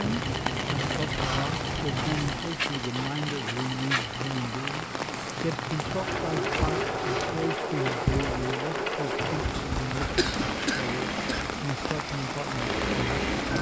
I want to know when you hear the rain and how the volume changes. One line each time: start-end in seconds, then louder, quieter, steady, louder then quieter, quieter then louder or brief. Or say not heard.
0.0-13.5 steady.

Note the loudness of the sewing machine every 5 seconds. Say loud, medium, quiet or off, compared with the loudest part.
medium, loud, loud.